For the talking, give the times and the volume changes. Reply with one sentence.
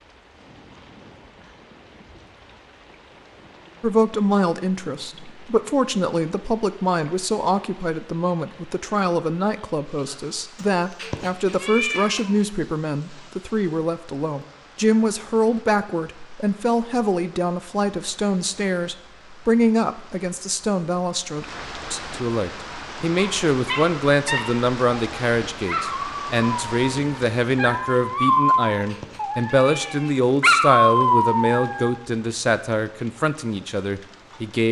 The talking can be heard from 3.8 to 34.6 s, at a steady volume.